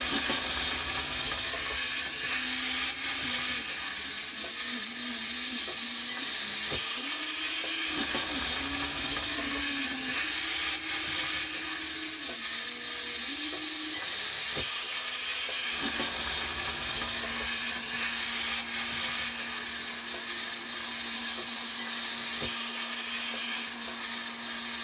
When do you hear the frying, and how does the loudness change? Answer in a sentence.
The frying can be heard from 0.0 to 24.7 s, at a steady volume.